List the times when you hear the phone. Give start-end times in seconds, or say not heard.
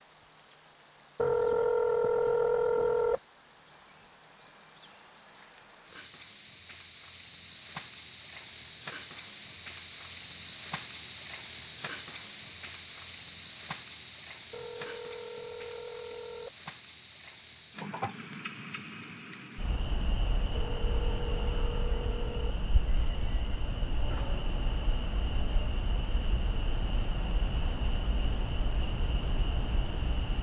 1.1-3.2, 14.5-16.6, 20.6-22.6.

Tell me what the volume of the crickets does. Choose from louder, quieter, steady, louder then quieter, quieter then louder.
louder then quieter.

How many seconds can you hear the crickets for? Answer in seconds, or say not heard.
30 s.